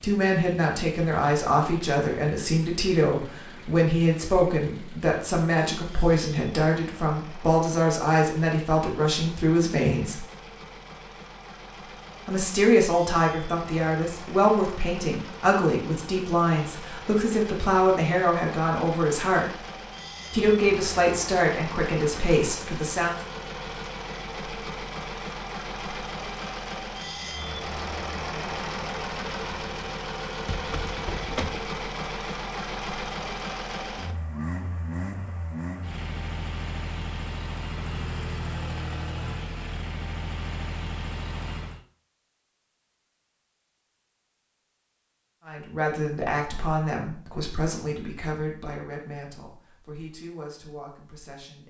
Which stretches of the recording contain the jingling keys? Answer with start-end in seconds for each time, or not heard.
30.4-31.6.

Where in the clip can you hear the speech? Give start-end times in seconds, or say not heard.
0.0-10.2, 12.2-19.4, 20.3-23.1, 45.5-51.6.